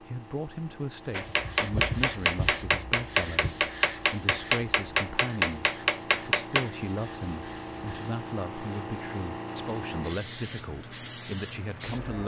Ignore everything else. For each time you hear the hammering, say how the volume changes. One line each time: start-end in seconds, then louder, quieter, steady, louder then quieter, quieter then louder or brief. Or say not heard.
1.1-6.7 steady.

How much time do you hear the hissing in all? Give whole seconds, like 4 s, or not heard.
12 s.